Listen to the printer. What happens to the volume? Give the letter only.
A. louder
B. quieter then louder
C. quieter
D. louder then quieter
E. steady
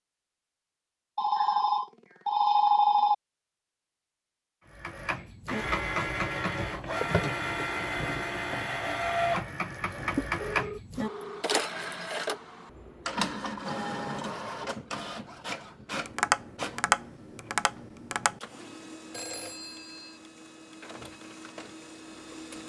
C.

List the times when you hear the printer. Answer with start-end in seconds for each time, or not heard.
4.7-22.6.